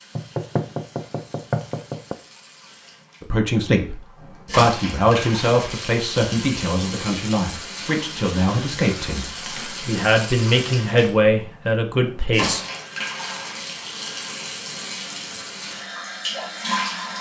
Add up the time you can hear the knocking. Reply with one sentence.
The knocking can be heard for 2 seconds in total.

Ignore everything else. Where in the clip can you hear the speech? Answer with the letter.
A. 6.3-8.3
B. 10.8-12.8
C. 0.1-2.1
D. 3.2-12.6
D.